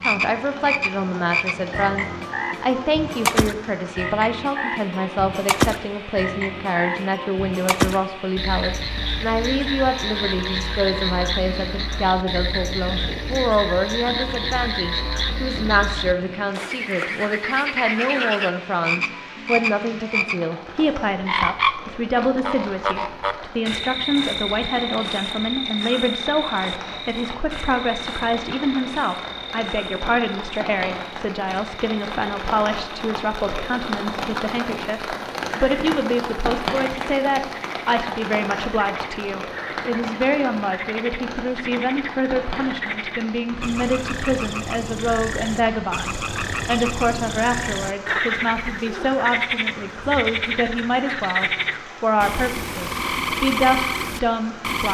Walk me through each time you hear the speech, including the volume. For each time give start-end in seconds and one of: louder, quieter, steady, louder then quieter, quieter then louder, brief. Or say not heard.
0.0-54.8 steady.